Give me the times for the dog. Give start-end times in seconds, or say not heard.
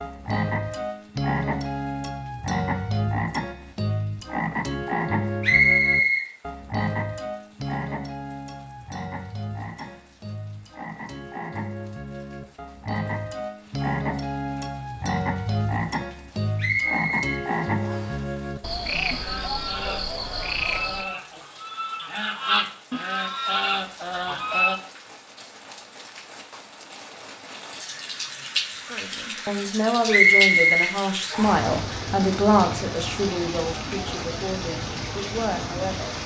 not heard.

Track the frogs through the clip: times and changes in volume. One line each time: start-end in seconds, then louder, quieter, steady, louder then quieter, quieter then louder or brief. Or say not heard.
0.0-21.1 quieter then louder.